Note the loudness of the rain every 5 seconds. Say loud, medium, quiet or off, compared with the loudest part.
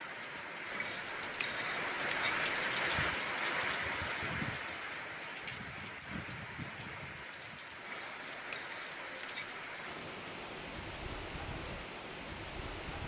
loud, medium, medium.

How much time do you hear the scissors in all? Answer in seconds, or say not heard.
4 s.